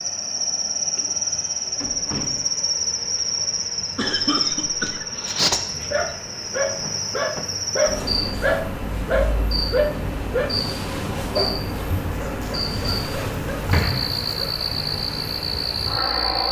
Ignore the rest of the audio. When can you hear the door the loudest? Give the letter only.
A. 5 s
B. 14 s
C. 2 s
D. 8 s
B.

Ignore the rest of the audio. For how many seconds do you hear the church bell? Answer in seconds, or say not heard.
not heard.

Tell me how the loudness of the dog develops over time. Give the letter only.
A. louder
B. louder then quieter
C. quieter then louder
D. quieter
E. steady
D.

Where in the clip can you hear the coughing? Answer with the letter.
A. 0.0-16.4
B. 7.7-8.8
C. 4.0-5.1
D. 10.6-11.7
C.